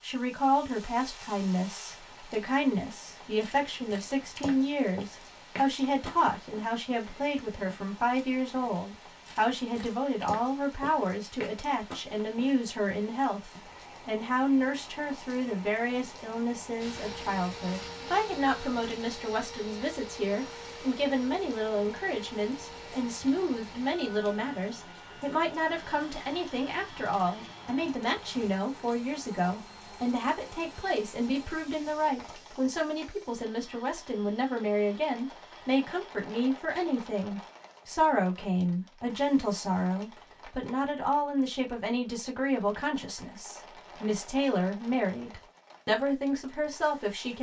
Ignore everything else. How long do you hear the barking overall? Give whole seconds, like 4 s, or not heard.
not heard.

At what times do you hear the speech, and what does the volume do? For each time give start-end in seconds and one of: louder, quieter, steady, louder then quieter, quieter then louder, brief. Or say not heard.
0.0-47.3 steady.